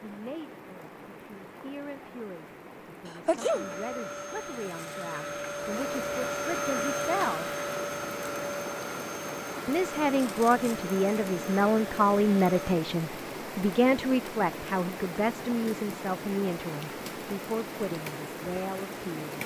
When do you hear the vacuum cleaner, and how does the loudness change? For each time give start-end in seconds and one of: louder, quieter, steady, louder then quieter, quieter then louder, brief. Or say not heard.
3.4-12.8 louder then quieter.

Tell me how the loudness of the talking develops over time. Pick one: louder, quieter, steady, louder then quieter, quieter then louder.
louder then quieter.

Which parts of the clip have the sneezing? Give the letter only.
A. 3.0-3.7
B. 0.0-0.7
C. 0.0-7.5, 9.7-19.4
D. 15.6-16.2
A.